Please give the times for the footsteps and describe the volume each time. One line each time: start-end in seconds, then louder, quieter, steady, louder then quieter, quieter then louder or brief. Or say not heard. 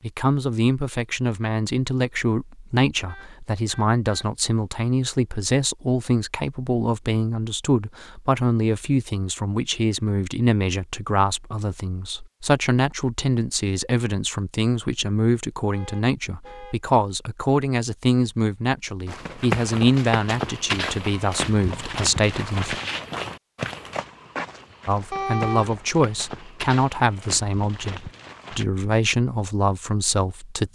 19.1-28.6 quieter.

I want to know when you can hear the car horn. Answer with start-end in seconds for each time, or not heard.
3.0-4.2, 15.7-16.8, 25.1-25.8.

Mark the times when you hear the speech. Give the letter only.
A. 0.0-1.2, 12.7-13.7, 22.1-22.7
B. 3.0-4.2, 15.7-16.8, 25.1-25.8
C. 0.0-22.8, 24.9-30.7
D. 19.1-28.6
C.